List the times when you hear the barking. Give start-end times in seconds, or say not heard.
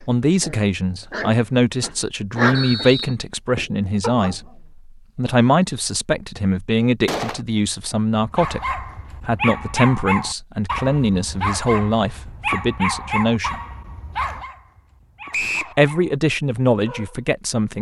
0.0-4.6, 8.2-16.1, 16.8-17.2.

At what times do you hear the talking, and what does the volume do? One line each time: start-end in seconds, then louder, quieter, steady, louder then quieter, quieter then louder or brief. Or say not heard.
0.0-13.6 steady
15.8-17.7 brief.